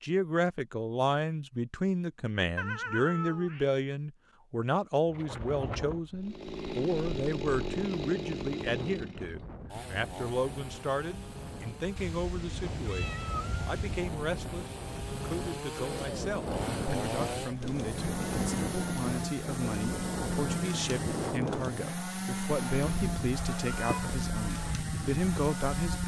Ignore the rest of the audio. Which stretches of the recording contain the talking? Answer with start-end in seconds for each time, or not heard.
0.0-26.0.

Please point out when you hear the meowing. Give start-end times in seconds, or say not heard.
2.5-3.7, 11.9-14.2, 23.5-24.2.